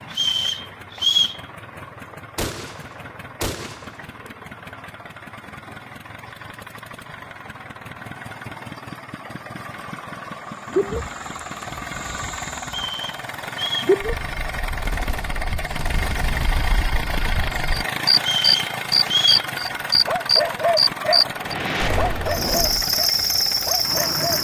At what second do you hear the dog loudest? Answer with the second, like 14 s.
21 s.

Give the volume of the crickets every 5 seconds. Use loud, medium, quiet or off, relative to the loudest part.
off, off, medium, loud, loud.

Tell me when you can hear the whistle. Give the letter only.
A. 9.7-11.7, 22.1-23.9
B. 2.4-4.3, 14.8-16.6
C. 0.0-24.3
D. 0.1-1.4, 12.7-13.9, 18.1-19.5
D.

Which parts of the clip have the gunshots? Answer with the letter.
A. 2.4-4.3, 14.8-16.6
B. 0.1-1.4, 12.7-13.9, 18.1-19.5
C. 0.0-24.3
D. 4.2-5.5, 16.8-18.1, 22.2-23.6
A.